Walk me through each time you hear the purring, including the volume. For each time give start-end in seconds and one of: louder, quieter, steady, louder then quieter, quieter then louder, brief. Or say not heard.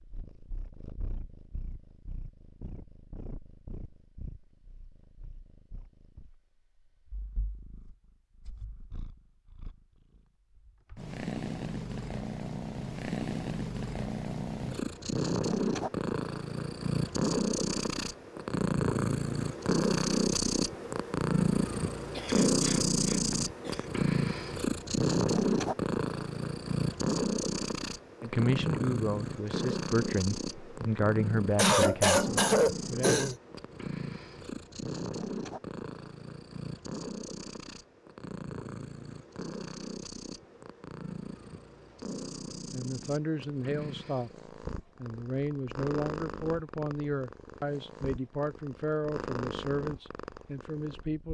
0.0-51.2 louder then quieter.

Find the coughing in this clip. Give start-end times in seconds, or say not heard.
22.1-23.9, 31.6-33.4.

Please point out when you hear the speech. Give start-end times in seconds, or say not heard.
28.2-33.2, 42.7-51.2.